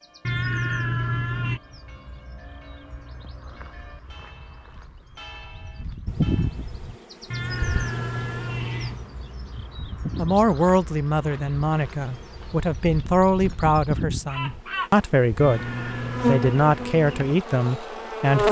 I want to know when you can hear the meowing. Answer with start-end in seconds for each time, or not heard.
0.2-1.6, 7.3-9.1, 15.3-16.4.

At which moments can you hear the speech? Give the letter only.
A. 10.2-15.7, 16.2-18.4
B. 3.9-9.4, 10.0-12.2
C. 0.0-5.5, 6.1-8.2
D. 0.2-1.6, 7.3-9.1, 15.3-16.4
A.